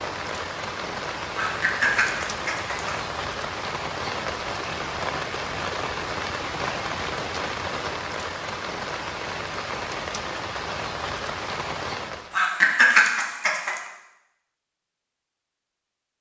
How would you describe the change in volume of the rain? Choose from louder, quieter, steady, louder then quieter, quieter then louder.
steady.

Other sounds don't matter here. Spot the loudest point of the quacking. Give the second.
13 s.